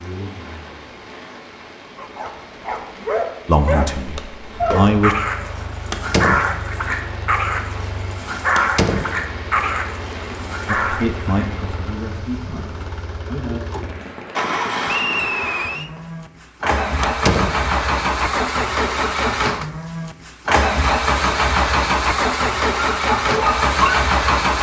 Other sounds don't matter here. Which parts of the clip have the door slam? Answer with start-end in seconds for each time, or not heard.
5.9-6.5, 8.6-9.2, 17.0-17.6.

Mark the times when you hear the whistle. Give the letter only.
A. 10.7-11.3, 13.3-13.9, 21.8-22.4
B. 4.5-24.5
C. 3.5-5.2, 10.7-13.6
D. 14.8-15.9
D.